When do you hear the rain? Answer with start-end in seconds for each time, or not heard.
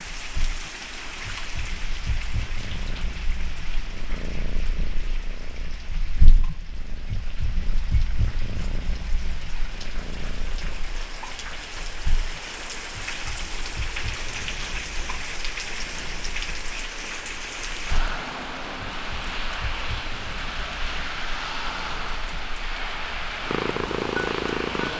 0.0-24.9.